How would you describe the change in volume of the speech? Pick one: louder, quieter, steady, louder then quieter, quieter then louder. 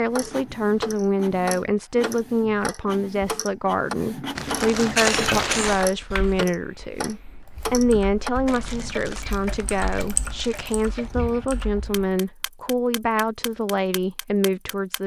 steady.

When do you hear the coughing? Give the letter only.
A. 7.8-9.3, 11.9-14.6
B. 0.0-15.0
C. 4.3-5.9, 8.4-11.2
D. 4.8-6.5
D.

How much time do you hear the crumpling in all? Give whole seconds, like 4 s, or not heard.
4 s.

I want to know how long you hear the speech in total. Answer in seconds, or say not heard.
15 s.